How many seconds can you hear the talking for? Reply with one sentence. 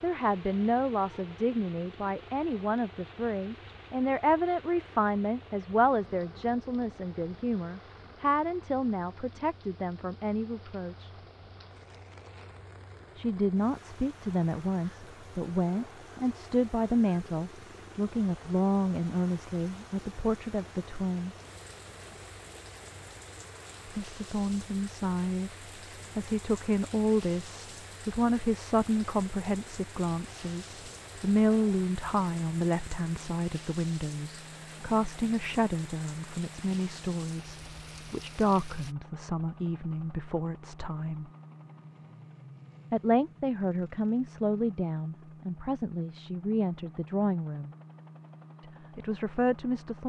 You can hear the talking for 42 seconds altogether.